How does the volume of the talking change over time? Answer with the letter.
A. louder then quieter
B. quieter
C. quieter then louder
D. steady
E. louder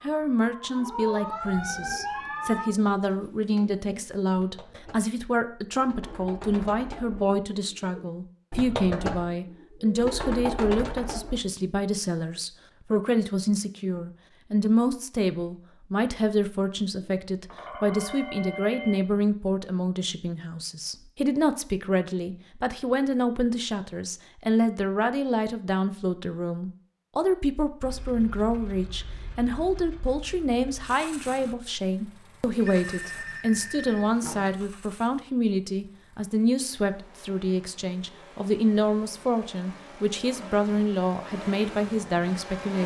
D.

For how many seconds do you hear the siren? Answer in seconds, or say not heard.
3 s.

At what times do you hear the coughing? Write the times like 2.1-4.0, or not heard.
not heard.